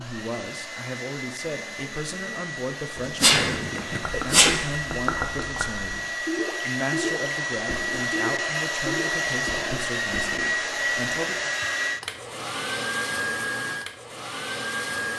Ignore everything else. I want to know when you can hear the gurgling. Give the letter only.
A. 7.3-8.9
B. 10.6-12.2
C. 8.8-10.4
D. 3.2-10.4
D.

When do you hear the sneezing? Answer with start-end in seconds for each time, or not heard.
3.0-4.5.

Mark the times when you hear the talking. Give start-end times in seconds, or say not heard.
0.0-11.6.